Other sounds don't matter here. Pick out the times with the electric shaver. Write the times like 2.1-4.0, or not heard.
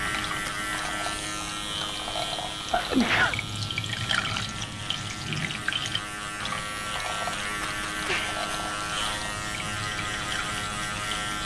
0.0-11.4.